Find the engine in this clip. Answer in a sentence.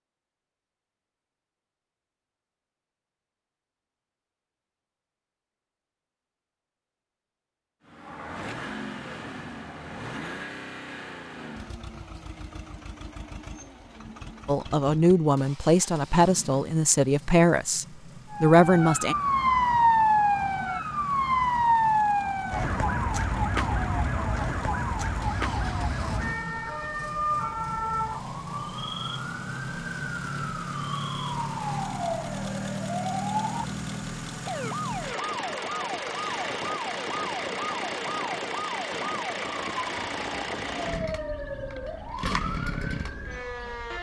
You can hear the engine from 7.8 to 43.9 s.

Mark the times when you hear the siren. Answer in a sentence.
The siren can be heard from 18.3 to 43.9 s.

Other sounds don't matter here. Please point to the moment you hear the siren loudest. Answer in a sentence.
The loudest moment of the siren is at 20 seconds.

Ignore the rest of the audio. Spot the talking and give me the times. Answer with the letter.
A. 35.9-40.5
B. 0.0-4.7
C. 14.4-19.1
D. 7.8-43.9
C.